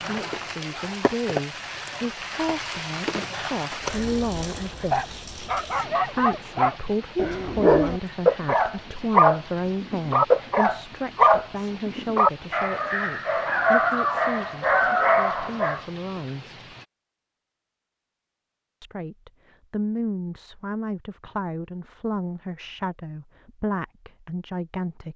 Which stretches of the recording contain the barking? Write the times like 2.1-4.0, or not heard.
4.9-15.8.